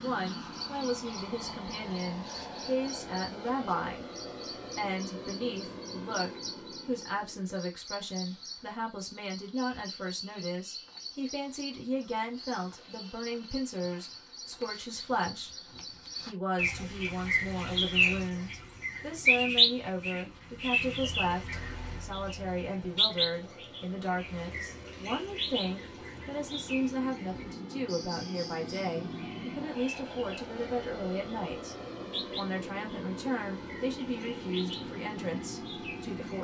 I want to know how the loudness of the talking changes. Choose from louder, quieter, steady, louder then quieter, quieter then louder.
steady.